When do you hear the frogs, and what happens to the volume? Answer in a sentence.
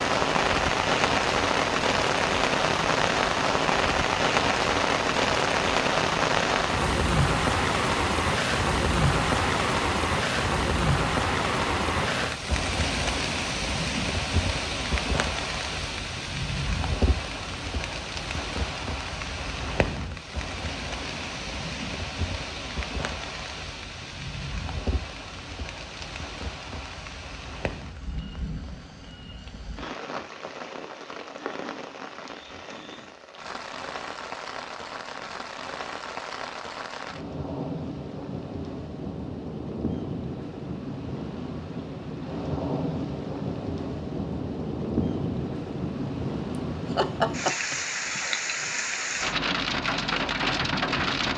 You can't hear the frogs here.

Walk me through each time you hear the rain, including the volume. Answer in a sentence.
The rain can be heard from 0.0 to 51.3 s, getting quieter then louder.